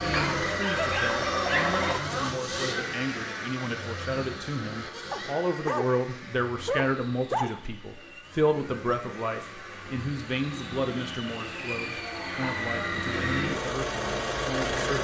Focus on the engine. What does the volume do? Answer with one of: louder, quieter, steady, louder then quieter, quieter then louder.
quieter then louder.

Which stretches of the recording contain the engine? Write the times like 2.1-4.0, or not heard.
0.0-14.9.